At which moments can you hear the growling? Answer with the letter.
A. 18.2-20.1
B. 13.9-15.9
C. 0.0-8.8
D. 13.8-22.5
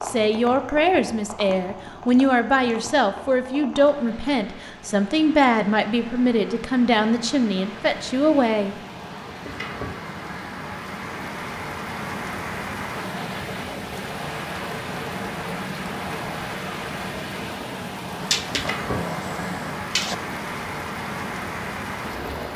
A.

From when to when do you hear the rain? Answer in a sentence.
You can hear the rain from 0.0 to 22.5 s.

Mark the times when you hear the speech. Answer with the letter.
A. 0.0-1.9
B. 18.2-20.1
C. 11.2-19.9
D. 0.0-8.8
D.